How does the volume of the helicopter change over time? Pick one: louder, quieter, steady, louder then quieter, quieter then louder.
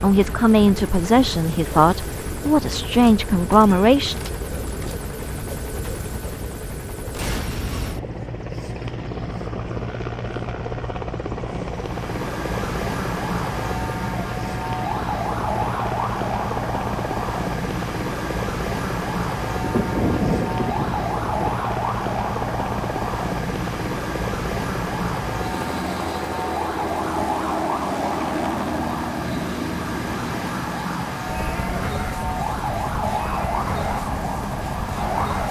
steady.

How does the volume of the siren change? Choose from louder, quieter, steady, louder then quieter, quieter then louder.
steady.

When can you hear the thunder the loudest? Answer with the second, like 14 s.
20 s.